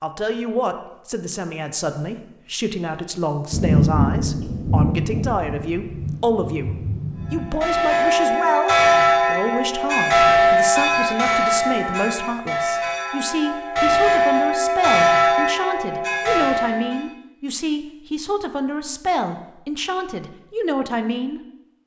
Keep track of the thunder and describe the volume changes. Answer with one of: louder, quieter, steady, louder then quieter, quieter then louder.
quieter.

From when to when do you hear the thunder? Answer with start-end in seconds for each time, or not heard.
3.5-7.5.